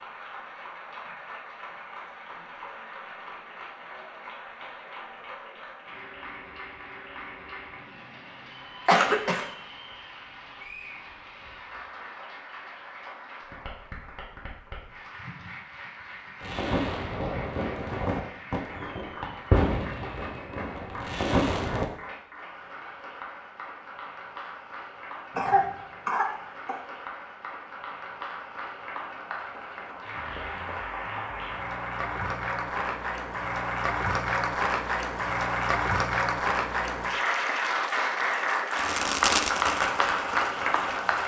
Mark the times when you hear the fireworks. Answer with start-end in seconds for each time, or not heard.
16.4-21.9, 38.7-41.2.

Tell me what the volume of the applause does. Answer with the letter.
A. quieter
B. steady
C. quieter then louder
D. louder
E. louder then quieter
D.